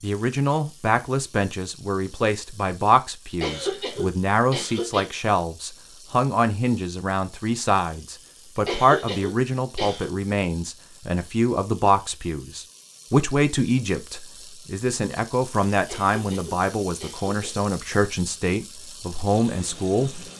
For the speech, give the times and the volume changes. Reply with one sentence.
You can hear the speech from 0.0 to 20.2 s, at a steady volume.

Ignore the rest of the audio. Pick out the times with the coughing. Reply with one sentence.
You can hear the coughing from 3.4 to 5.0 s, from 8.7 to 10.1 s and from 15.8 to 17.6 s.